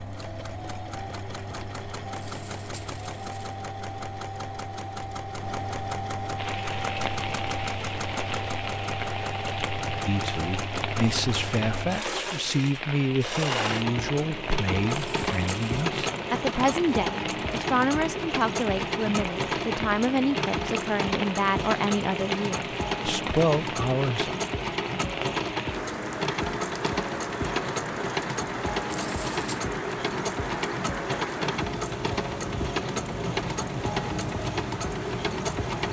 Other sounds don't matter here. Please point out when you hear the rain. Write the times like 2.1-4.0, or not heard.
6.3-35.8.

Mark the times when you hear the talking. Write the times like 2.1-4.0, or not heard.
10.1-24.4.